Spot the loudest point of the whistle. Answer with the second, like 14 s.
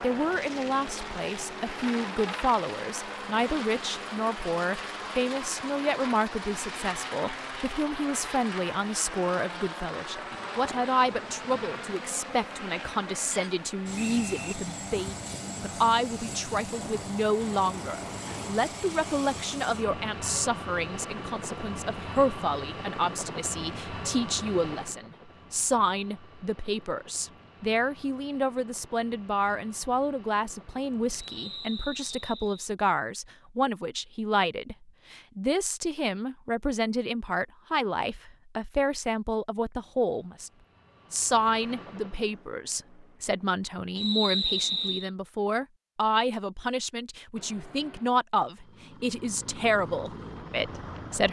44 s.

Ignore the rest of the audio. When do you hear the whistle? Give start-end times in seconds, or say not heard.
13.3-14.6, 31.1-32.7, 44.0-45.1.